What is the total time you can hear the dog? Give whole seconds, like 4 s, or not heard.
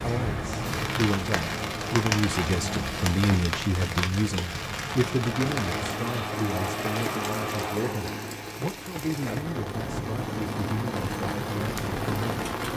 not heard.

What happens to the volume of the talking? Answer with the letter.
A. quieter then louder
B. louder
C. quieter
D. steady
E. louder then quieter
C.